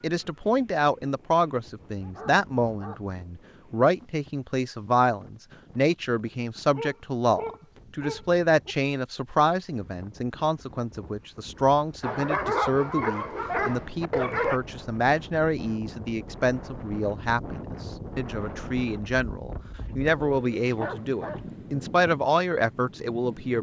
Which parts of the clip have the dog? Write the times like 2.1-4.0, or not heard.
1.8-3.2, 6.7-8.8, 12.0-14.6, 19.8-21.6.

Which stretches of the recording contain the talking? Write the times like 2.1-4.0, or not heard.
0.0-23.5.